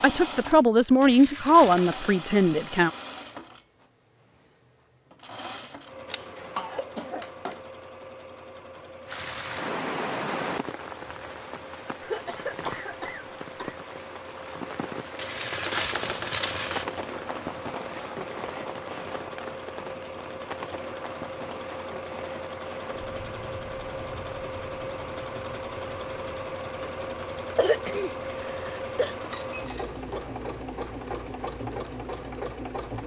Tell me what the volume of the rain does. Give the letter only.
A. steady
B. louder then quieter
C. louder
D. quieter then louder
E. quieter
E.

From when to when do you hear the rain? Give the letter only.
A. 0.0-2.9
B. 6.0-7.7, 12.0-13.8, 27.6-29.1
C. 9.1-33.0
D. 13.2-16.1
C.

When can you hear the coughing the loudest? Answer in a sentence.
The volume of the coughing peaks at 28 seconds.